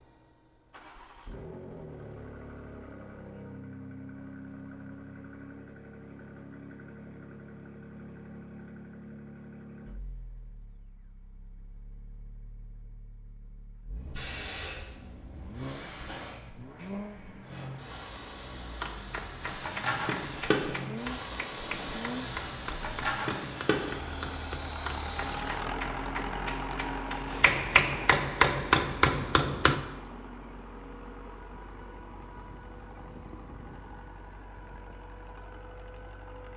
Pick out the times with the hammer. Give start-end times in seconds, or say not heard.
18.8-29.8.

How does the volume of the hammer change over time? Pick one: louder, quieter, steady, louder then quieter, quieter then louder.
louder.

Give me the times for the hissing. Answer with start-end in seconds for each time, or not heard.
13.9-25.6.